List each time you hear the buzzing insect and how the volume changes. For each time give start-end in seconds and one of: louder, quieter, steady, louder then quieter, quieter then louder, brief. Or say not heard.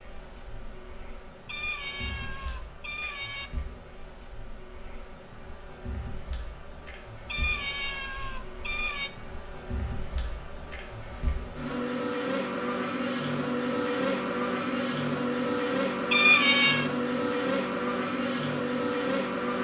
0.0-19.5 louder.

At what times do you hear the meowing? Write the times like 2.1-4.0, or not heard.
1.4-3.5, 7.2-9.1, 16.1-16.9.